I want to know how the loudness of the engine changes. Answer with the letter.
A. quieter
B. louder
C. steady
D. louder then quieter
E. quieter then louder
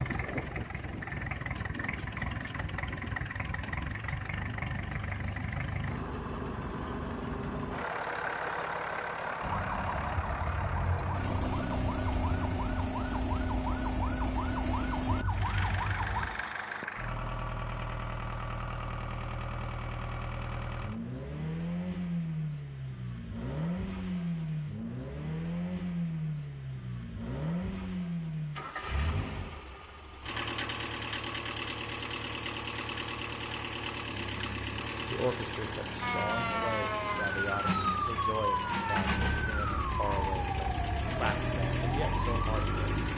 C.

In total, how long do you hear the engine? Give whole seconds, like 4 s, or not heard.
43 s.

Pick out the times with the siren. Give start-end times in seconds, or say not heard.
9.4-16.3, 36.0-43.1.